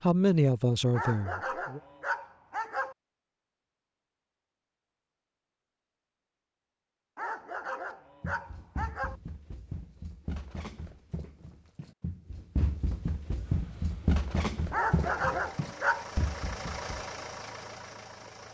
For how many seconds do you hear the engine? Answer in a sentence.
The engine can be heard for 5 seconds in total.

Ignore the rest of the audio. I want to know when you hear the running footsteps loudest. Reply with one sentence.
The volume of the running footsteps peaks at 14 seconds.